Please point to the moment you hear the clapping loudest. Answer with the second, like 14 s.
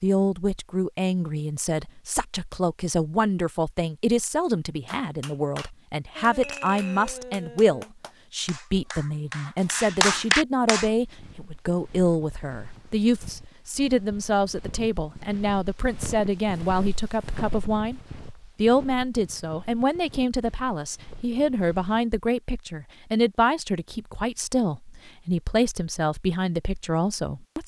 10 s.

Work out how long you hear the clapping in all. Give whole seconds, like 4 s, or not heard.
6 s.